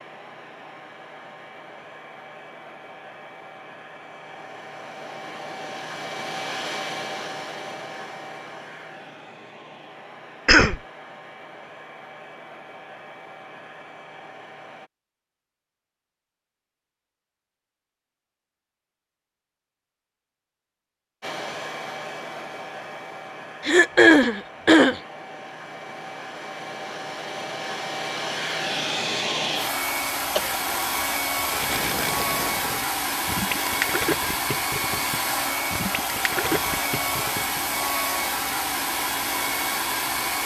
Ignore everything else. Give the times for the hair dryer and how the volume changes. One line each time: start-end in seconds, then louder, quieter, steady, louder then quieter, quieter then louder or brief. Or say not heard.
0.0-14.9 louder then quieter
21.2-40.4 louder.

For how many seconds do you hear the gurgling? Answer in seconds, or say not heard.
6 s.